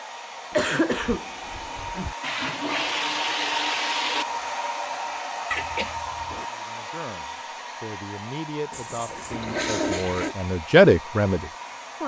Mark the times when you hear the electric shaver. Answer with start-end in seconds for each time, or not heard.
not heard.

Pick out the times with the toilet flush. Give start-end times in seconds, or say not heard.
2.2-4.2, 9.3-10.3.